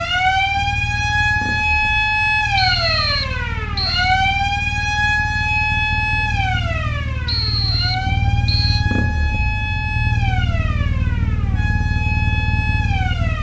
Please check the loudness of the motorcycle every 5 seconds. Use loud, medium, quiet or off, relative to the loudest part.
medium, loud, loud.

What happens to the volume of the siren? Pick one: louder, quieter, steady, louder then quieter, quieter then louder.
quieter.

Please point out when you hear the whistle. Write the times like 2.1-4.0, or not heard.
2.5-4.0, 7.2-8.8.